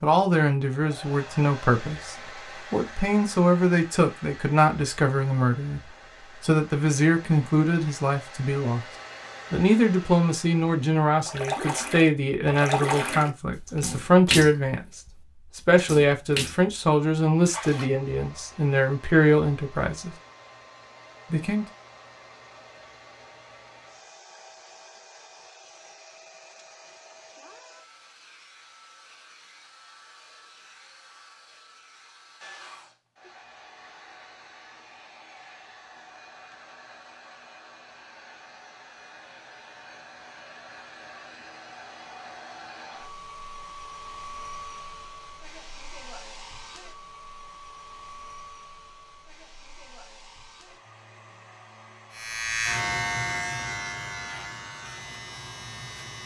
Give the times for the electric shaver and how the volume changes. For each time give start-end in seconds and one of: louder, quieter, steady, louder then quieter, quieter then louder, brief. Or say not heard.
52.1-56.2 quieter.